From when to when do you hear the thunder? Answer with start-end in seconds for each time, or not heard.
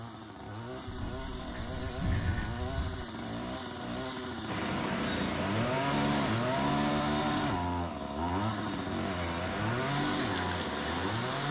0.8-3.0.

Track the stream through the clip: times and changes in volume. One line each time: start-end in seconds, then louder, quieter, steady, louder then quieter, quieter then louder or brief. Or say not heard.
4.5-11.4 quieter then louder.